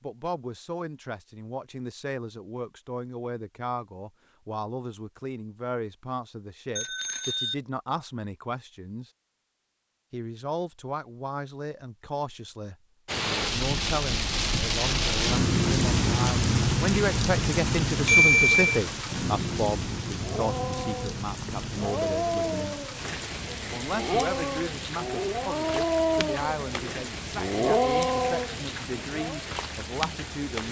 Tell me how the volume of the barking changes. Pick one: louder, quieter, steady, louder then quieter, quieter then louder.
louder.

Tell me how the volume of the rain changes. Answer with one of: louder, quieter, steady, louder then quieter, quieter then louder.
quieter.